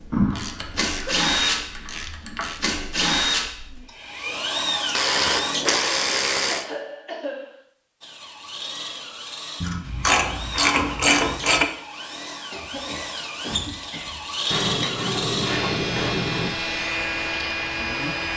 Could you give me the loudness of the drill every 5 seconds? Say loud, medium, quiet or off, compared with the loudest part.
loud, medium, medium, loud.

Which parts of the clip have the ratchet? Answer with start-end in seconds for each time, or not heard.
0.1-2.6, 4.9-6.7, 9.6-11.7, 14.5-16.5.